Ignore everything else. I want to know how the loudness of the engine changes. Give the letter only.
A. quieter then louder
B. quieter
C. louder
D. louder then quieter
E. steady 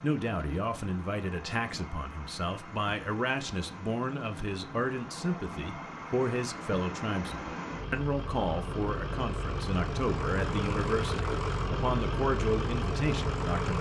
C.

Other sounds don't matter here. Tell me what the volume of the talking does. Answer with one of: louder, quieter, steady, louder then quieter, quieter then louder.
steady.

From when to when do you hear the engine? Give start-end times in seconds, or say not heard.
0.0-13.7.